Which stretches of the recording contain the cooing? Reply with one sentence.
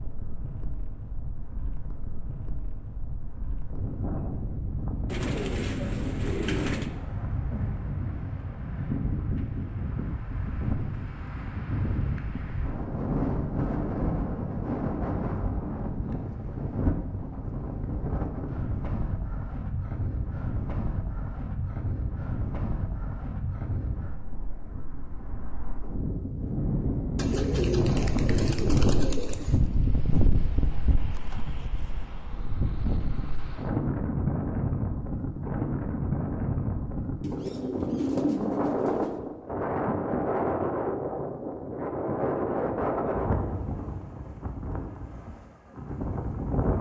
You can hear the cooing from 5.0 to 6.9 s, from 27.1 to 29.6 s and from 37.2 to 39.2 s.